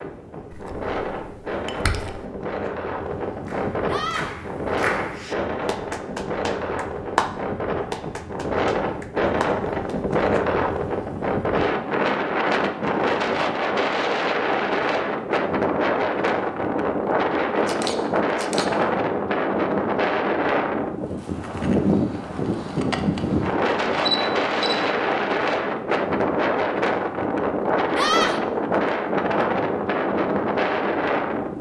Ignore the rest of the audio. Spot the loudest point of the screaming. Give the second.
28 s.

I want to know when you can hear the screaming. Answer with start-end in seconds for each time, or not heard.
3.9-4.3, 27.9-28.4.